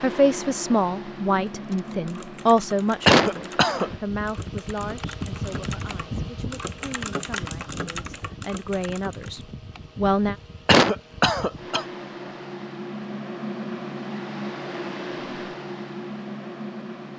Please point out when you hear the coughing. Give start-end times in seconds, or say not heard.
3.0-3.9, 10.7-11.8.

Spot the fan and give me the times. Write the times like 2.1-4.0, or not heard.
0.0-17.1.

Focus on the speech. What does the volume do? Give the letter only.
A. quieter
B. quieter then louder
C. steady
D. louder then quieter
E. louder
B.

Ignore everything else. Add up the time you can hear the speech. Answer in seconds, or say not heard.
10 s.